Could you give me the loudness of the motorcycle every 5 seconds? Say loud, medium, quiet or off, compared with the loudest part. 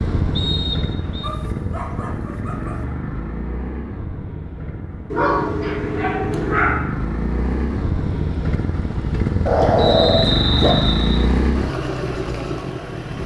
medium, loud, loud.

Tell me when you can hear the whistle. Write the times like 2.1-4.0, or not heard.
0.3-1.3, 9.8-11.2.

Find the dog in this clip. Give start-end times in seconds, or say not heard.
1.2-2.9, 5.1-6.8, 9.4-10.8.